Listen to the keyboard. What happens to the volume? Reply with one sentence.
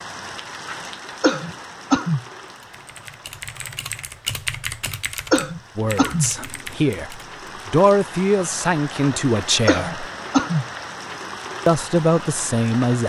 The volume of the keyboard goes up, then down.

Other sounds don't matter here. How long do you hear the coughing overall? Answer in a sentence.
You can hear the coughing for 3 seconds altogether.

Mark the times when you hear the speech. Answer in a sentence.
You can hear the speech from 5.8 to 10.1 s and from 11.7 to 13.0 s.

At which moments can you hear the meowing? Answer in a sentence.
The meowing can't be heard in this clip.